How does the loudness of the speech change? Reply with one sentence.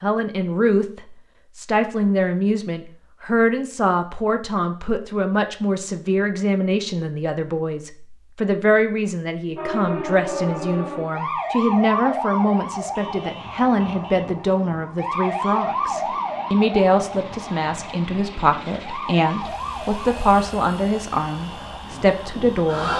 The volume of the speech stays about the same.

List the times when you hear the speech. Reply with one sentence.
The speech can be heard from 0.0 to 22.9 s.